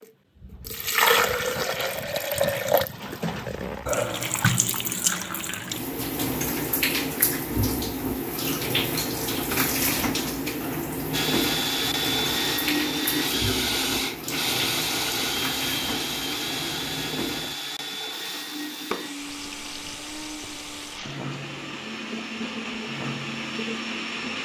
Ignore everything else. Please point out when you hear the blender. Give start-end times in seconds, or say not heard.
11.1-24.4.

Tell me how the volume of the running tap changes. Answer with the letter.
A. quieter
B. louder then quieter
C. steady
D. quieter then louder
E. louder
A.